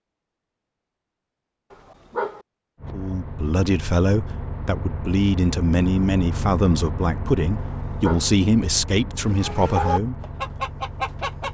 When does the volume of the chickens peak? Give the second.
10 s.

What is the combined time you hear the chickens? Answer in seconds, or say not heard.
2 s.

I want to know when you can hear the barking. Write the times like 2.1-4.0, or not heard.
1.7-2.5, 7.6-8.3.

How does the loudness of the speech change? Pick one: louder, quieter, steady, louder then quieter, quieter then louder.
steady.